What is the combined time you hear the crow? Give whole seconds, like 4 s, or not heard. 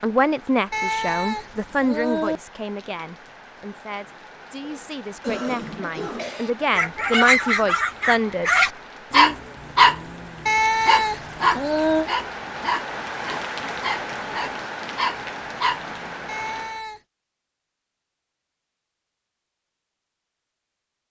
not heard.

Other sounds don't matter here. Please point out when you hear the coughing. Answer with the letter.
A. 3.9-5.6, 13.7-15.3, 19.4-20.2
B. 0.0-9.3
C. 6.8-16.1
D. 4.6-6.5
D.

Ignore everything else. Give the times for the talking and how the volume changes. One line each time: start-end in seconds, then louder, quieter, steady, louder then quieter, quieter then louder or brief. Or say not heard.
0.0-9.3 quieter then louder.